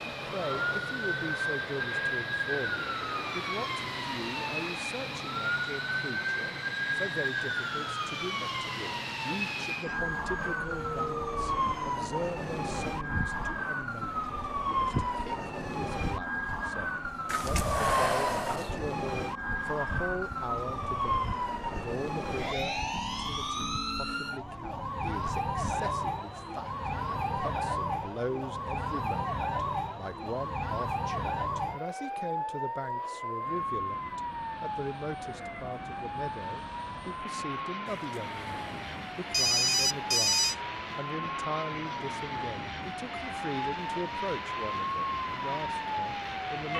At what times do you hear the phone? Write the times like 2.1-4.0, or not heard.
17.2-18.8, 37.9-40.5.